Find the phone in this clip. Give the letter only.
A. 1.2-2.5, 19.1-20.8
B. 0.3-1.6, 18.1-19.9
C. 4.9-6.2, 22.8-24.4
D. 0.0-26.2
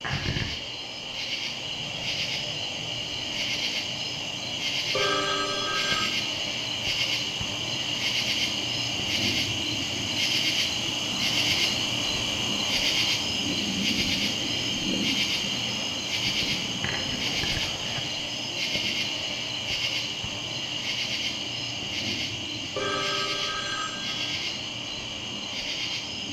C.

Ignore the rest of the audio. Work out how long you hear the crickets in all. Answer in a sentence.
You can hear the crickets for 26 seconds altogether.